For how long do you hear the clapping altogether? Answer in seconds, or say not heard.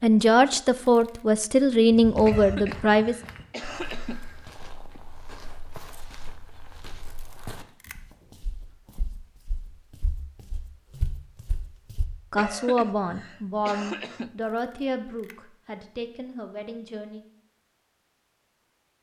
not heard.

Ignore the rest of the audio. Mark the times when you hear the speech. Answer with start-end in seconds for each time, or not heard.
0.0-3.1, 12.3-17.2.